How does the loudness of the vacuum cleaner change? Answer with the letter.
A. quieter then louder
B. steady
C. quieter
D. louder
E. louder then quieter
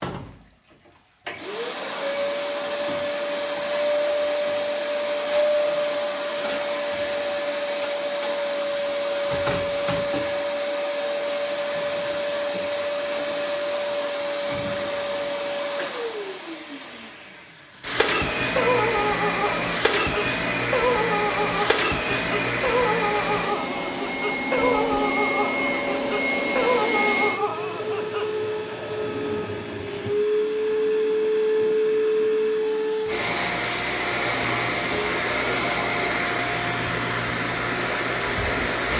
B.